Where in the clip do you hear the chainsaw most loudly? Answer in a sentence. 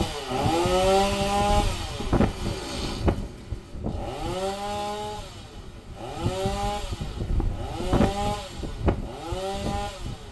The volume of the chainsaw peaks at 1 second.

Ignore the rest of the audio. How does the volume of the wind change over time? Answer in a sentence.
The volume of the wind goes down, then up.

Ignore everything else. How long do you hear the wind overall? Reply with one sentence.
You can hear the wind for 10 seconds altogether.